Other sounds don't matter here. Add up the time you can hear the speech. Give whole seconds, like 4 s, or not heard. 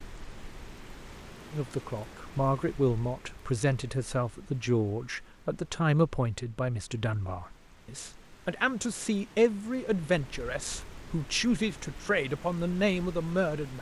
12 s.